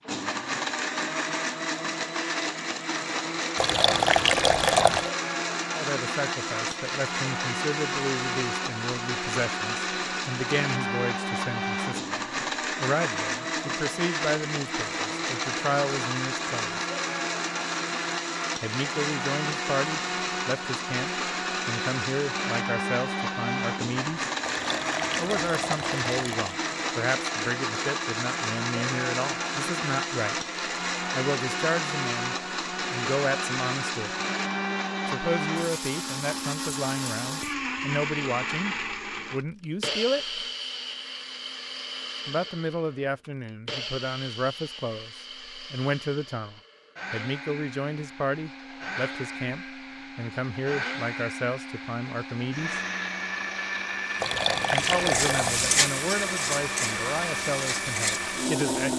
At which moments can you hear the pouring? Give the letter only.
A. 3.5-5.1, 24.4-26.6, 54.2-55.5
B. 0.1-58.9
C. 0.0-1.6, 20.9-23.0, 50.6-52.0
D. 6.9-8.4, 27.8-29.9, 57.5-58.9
A.